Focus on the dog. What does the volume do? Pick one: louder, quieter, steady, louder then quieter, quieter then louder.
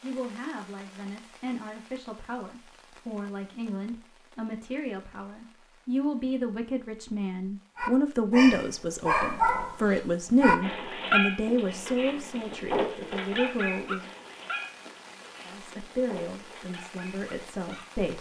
quieter.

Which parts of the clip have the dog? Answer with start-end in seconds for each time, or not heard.
7.8-17.9.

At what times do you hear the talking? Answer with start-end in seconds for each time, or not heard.
0.0-14.1, 15.4-18.1.